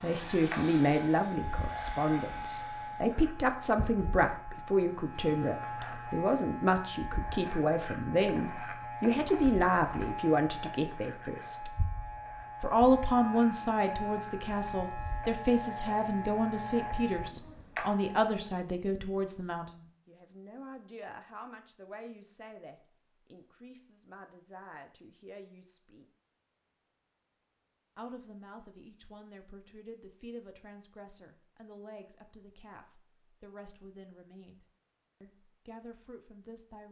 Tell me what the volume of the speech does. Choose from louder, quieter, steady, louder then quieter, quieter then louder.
quieter.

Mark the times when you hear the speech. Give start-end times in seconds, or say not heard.
0.0-11.7, 12.6-26.1, 27.9-36.8.